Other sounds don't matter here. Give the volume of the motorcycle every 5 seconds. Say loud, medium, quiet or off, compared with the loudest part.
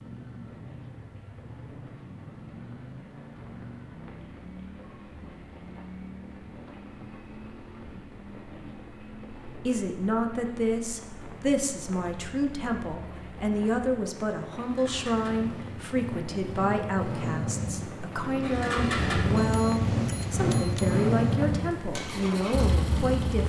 quiet, quiet, quiet, loud, loud.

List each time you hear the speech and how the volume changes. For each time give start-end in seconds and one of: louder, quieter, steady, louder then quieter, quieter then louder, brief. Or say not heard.
9.4-23.4 steady.